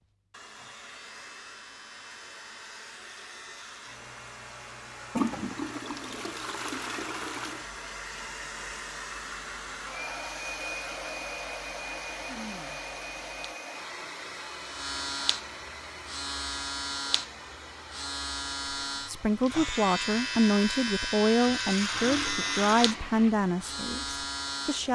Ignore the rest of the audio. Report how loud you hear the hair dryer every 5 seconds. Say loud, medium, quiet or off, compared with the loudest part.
medium, loud, loud, medium, medium.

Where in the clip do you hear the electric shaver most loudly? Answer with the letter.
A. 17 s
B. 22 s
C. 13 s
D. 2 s
B.